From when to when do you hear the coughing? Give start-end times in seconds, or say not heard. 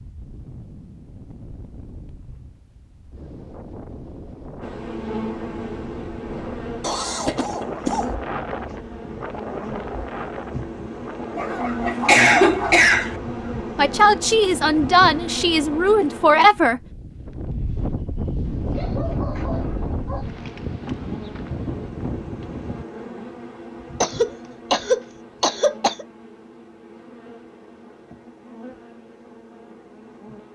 6.8-8.1, 11.8-13.2, 24.0-26.1.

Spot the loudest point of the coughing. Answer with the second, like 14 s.
12 s.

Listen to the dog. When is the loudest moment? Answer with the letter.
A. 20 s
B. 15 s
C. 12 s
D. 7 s
C.